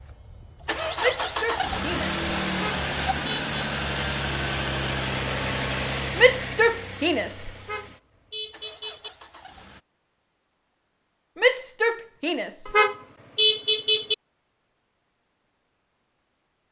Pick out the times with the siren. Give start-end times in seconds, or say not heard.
not heard.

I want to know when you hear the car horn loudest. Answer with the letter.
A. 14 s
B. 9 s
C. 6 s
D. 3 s
A.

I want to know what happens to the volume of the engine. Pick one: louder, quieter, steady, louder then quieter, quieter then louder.
quieter.